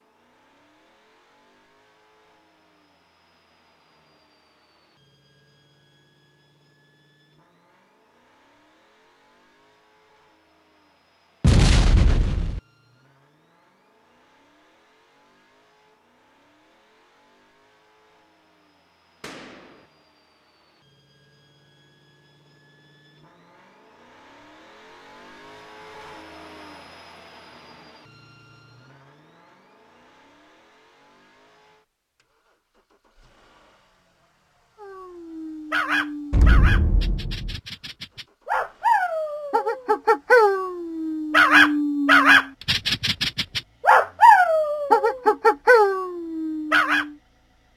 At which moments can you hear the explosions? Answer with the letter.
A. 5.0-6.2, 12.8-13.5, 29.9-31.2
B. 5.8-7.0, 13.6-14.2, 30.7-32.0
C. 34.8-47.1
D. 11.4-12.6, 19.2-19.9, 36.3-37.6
D.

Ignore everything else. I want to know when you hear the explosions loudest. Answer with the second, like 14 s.
12 s.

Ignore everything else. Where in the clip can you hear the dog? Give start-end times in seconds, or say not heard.
34.8-47.1.